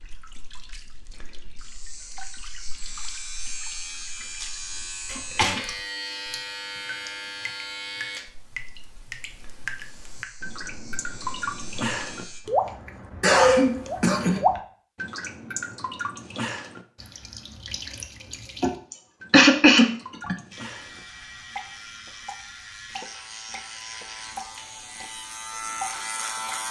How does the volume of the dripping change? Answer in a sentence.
The loudness of the dripping goes up, then down.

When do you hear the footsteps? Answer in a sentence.
The footsteps can't be heard in this clip.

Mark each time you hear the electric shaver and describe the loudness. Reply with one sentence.
You can hear the electric shaver from 0.0 to 12.4 s, getting louder then quieter; and from 20.5 to 26.6 s, getting louder.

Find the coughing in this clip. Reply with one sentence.
The coughing can be heard from 5.0 to 5.7 s, from 13.2 to 14.4 s and from 18.6 to 20.4 s.